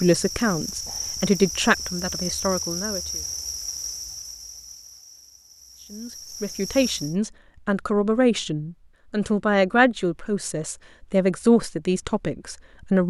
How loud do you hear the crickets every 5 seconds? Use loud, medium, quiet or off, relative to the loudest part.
loud, medium, off.